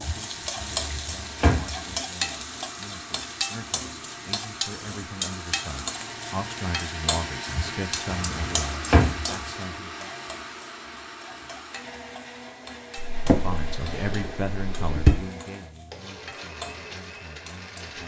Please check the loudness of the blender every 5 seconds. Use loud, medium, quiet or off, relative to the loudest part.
medium, loud, medium, medium.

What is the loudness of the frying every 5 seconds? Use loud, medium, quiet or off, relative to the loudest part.
loud, loud, quiet, medium.